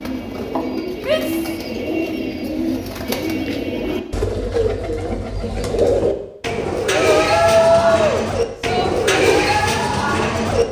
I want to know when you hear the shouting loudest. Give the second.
8 s.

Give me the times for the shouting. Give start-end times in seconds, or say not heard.
1.1-1.5, 7.0-8.9.